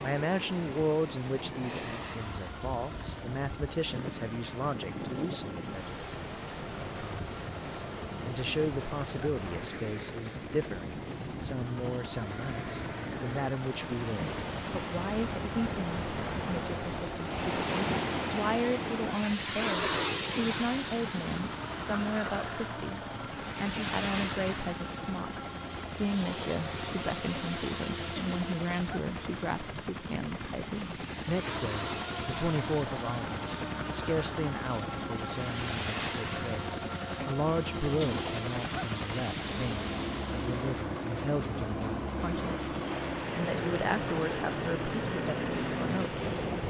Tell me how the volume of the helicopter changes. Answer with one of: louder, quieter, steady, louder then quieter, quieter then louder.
louder.